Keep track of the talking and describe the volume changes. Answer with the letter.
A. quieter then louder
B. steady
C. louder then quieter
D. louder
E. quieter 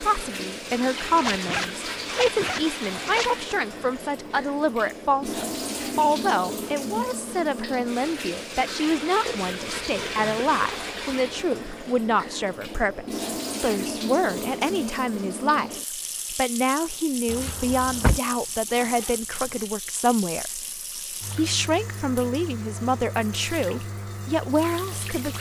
B.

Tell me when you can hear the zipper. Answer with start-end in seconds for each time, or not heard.
1.1-3.3, 9.2-11.6, 17.2-19.6.